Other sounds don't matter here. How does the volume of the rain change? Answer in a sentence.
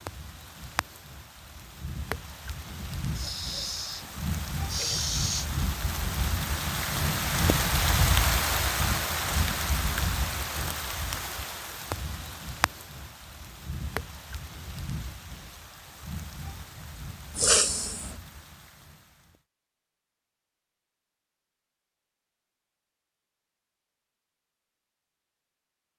The loudness of the rain goes up, then down.